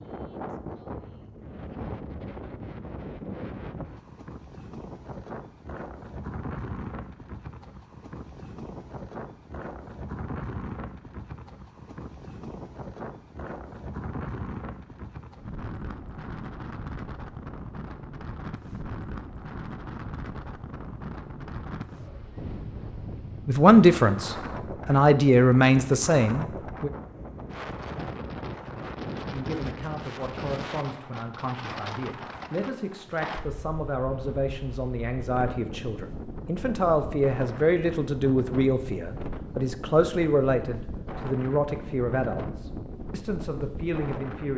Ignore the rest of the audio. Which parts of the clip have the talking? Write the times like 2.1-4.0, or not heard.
23.4-26.9, 29.2-44.5.